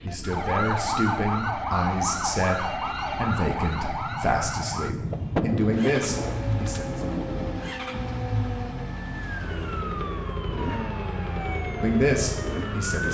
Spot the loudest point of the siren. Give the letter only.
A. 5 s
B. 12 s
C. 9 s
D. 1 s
D.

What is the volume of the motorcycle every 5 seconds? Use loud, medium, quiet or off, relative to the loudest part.
medium, loud, loud.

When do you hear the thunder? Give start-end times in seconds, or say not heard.
5.0-7.8.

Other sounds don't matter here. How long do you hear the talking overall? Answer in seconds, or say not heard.
8 s.